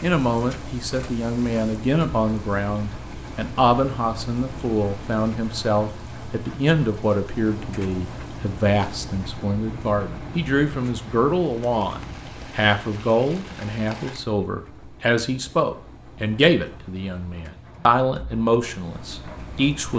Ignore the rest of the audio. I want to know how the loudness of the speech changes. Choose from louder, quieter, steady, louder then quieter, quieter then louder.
steady.